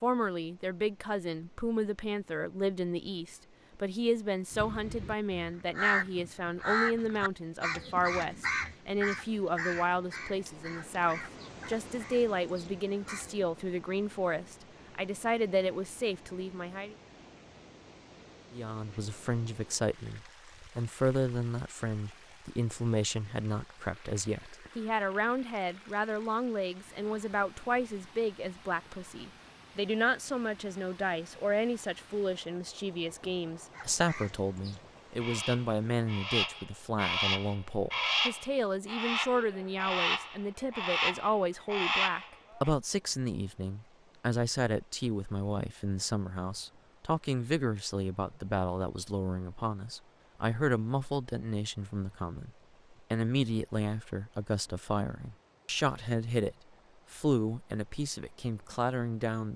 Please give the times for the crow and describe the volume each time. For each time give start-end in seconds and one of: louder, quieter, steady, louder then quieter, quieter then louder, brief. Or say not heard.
4.5-13.4 quieter
33.7-42.7 louder.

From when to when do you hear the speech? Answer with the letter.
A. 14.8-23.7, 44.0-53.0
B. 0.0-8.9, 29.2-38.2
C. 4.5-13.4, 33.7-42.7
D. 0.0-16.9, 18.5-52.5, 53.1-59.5
D.